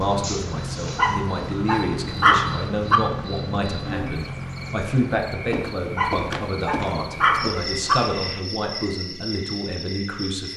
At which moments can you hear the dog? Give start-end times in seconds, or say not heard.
0.9-3.0, 6.0-8.0.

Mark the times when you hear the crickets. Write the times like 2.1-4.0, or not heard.
0.0-10.5.